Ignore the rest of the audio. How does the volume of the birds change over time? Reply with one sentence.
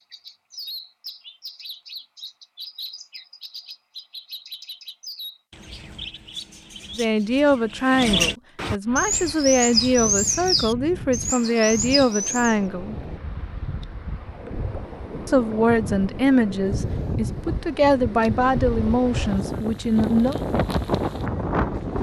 The loudness of the birds goes up.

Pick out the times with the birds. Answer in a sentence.
The birds can be heard from 0.1 to 12.6 s.